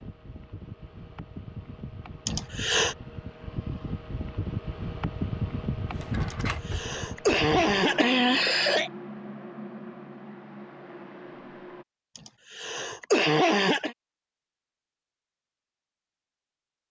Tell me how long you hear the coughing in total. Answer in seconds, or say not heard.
5 s.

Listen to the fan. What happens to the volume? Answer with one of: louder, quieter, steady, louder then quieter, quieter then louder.
louder then quieter.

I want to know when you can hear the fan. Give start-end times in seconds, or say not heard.
0.0-11.8.